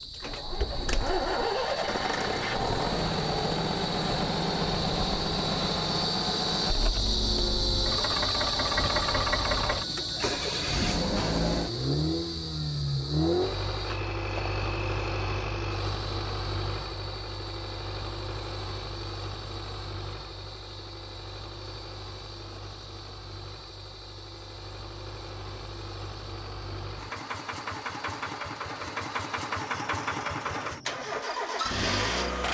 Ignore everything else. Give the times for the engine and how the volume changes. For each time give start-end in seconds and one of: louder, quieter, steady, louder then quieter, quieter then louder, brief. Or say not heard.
0.0-32.4 quieter then louder.